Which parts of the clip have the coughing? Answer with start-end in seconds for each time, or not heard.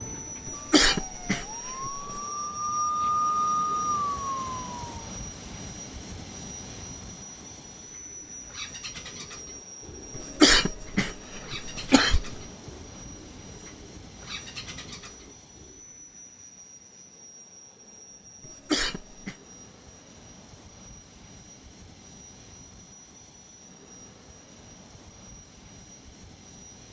0.5-2.2, 10.2-12.4, 18.4-19.4.